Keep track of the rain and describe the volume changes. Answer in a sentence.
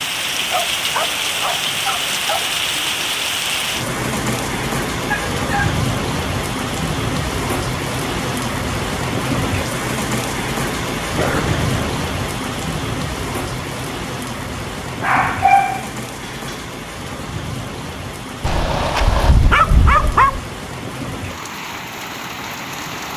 The loudness of the rain goes down.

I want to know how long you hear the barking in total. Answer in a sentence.
The barking can be heard for 7 seconds in total.